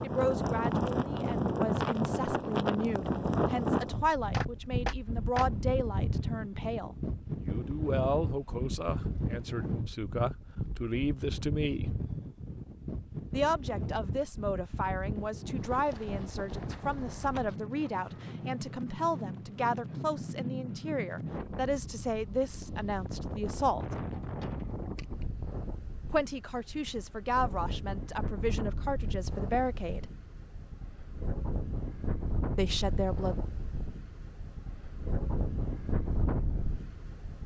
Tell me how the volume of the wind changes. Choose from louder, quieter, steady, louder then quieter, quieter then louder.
quieter.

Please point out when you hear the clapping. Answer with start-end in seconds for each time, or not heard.
4.3-5.5.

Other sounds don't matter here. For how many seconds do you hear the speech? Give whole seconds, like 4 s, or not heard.
27 s.